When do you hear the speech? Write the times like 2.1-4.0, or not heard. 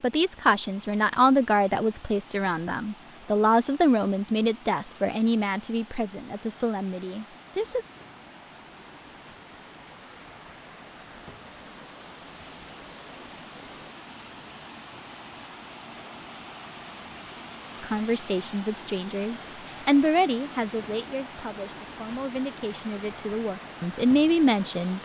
0.0-7.8, 17.8-24.9.